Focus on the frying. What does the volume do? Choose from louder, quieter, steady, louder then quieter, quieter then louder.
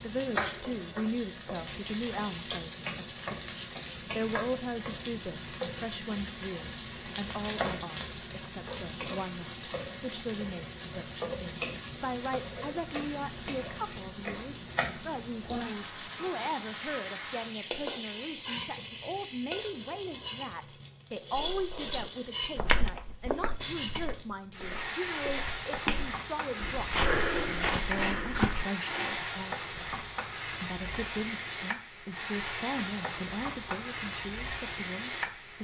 steady.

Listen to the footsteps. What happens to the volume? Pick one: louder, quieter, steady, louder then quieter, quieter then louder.
quieter then louder.